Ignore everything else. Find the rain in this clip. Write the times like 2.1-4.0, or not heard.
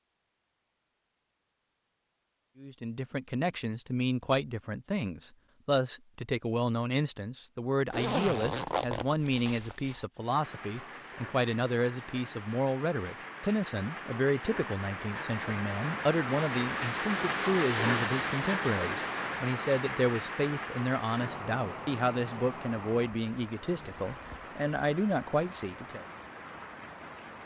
10.2-27.4.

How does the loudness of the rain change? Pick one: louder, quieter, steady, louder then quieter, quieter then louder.
louder then quieter.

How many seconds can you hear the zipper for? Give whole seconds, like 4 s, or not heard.
2 s.